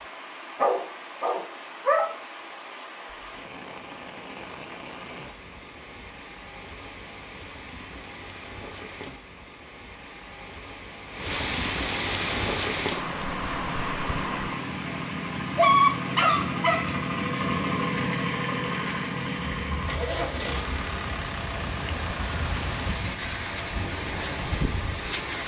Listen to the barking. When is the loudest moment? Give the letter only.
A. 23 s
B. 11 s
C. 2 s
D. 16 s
D.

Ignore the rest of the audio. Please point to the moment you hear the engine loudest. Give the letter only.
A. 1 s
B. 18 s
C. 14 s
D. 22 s
B.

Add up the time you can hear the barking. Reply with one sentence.
The barking can be heard for 3 seconds in total.